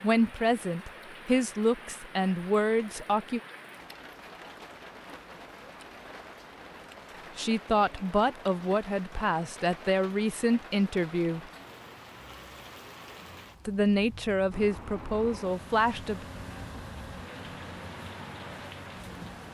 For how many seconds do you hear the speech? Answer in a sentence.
The speech can be heard for 10 seconds in total.